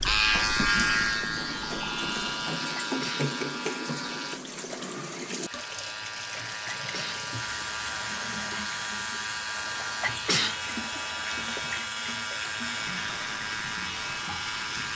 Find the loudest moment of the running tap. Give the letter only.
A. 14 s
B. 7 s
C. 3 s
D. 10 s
C.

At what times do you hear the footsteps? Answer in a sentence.
You can't hear the footsteps here.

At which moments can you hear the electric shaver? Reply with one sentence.
The electric shaver can be heard from 0.0 to 14.9 s.